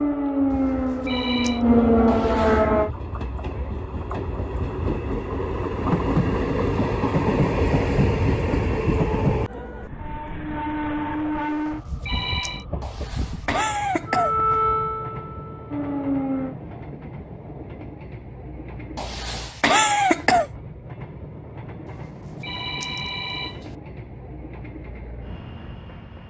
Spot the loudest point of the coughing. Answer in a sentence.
The volume of the coughing peaks at 20 seconds.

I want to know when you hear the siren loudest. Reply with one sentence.
The loudest moment of the siren is at 2 seconds.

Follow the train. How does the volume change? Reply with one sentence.
The volume of the train goes up, then down.